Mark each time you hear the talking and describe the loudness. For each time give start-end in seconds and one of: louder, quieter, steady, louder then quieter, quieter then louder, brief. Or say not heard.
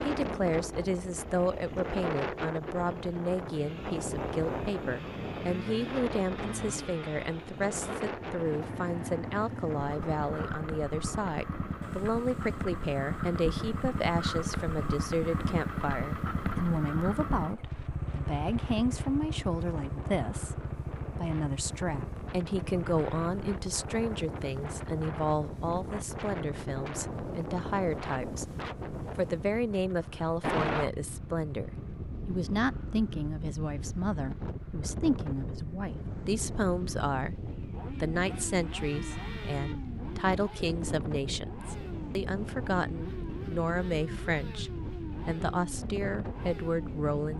0.0-47.3 steady.